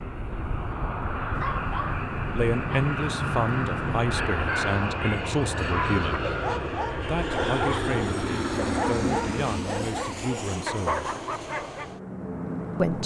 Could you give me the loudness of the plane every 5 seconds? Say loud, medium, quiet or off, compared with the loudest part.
loud, loud, medium.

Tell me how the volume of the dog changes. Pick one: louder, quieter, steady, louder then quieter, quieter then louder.
steady.